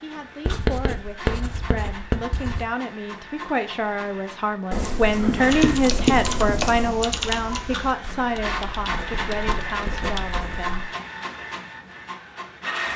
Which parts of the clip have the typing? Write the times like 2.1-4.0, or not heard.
5.4-10.6.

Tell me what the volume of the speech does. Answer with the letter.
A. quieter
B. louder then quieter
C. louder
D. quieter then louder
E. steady
B.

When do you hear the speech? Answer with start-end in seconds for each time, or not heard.
0.0-10.8.